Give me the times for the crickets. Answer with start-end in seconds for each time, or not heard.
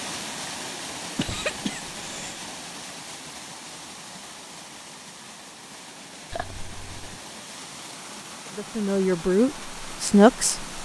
not heard.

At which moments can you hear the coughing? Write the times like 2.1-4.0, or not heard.
1.1-2.5, 6.3-7.2.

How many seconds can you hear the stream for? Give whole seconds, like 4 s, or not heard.
11 s.